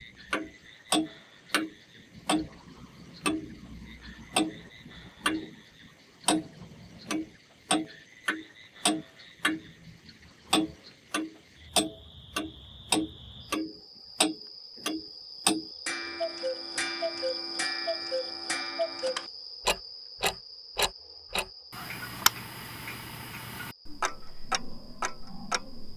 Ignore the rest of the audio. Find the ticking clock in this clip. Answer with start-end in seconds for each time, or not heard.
0.3-5.5, 6.2-25.9.